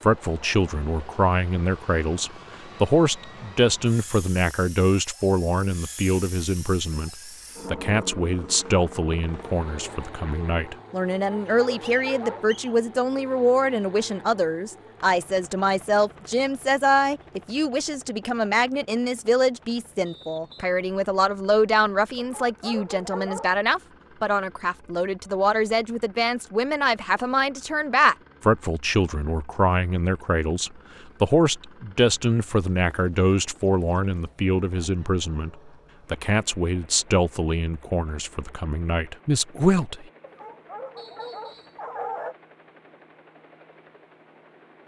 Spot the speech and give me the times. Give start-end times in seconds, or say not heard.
0.0-7.1, 7.7-40.0.